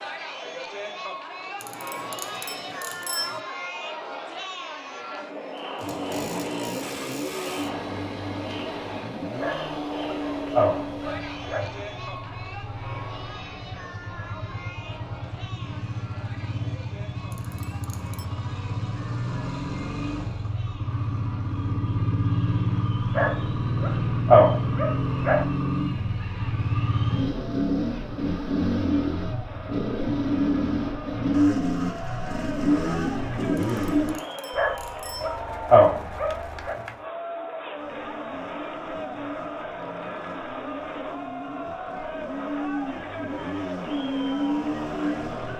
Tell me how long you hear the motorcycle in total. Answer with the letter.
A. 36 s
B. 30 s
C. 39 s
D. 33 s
A.